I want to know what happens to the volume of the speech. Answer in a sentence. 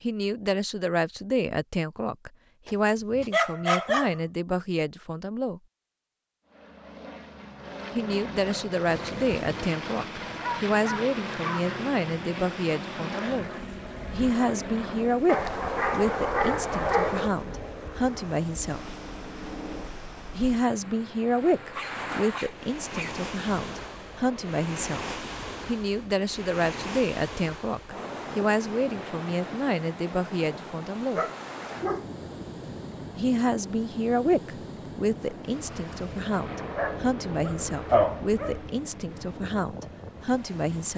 The volume of the speech stays about the same.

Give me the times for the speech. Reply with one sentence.
You can hear the speech from 0.0 to 5.6 s, from 8.0 to 13.5 s, from 14.1 to 19.0 s, from 20.4 to 31.2 s and from 33.1 to 40.9 s.